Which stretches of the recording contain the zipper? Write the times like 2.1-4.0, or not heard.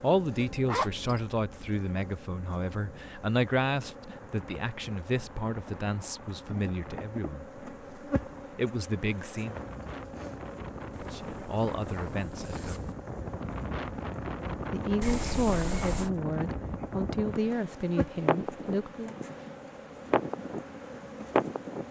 0.7-1.1, 10.9-12.9, 15.0-16.1.